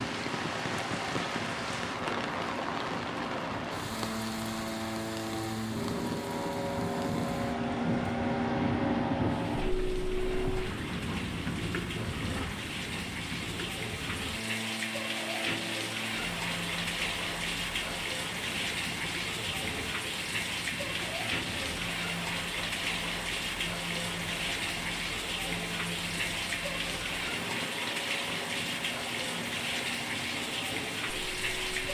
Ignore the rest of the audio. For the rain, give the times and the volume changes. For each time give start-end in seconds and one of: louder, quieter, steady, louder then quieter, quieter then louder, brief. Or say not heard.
0.0-31.9 quieter then louder.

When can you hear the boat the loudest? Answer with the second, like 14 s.
9 s.